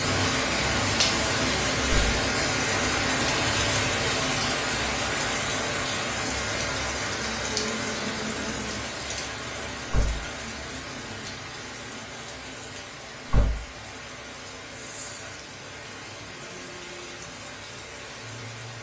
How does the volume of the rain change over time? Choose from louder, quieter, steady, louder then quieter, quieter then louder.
quieter.